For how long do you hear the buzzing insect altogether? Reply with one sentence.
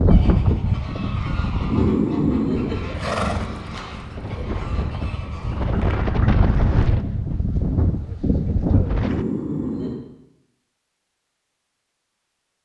The buzzing insect can't be heard in this clip.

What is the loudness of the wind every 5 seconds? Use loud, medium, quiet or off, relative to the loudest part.
loud, loud, off.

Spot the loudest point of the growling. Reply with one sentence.
The loudest moment of the growling is at 2 seconds.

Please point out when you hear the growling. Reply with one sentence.
The growling can be heard from 1.6 to 3.2 s and from 9.0 to 10.0 s.